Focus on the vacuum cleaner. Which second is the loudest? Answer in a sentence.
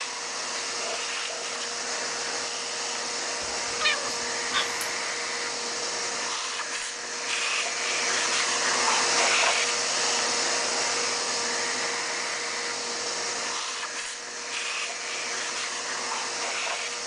The loudest moment of the vacuum cleaner is at 9 seconds.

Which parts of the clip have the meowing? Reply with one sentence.
You can hear the meowing from 3.5 to 4.9 s.